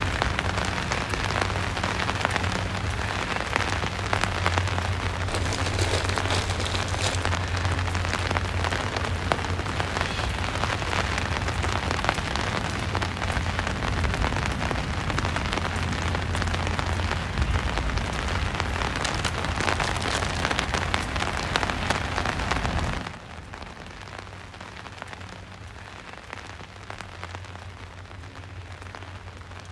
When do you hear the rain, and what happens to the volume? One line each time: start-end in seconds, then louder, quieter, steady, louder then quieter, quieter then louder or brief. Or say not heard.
0.0-29.6 quieter.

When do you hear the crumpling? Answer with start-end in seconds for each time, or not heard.
5.2-7.3, 19.0-20.4.